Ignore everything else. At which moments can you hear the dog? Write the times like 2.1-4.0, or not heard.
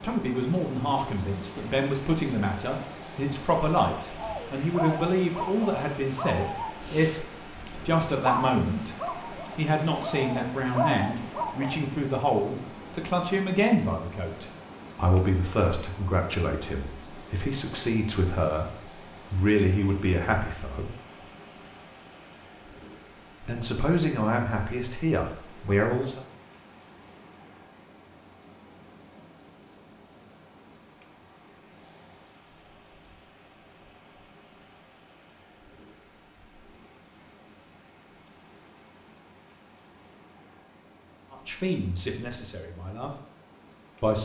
4.2-11.9.